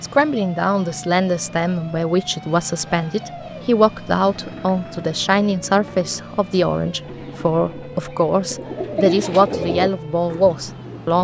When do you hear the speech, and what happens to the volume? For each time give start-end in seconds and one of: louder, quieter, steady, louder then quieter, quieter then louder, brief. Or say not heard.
0.0-11.2 steady.